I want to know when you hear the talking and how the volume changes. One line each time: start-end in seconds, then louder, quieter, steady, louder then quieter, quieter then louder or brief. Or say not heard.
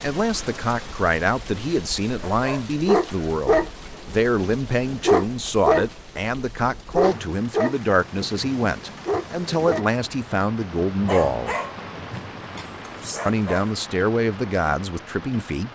0.0-11.6 steady
13.2-15.7 brief.